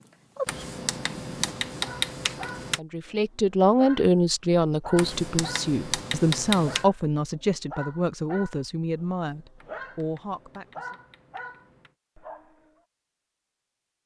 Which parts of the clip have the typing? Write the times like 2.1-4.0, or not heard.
0.5-2.8, 5.0-6.8, 9.6-11.9.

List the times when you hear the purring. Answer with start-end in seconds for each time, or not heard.
0.0-1.6.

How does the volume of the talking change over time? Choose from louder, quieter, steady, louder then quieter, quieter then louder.
quieter.